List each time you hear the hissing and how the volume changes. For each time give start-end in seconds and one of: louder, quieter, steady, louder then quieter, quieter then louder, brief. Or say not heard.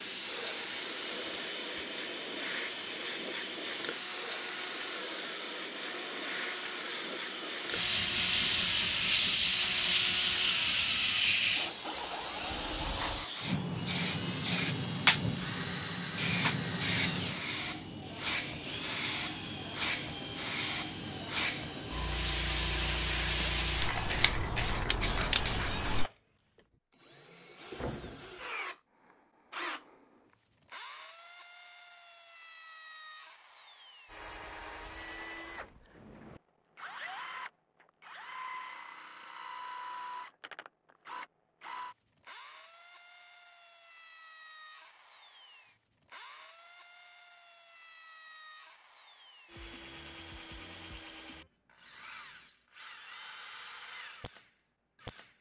0.0-26.1 steady.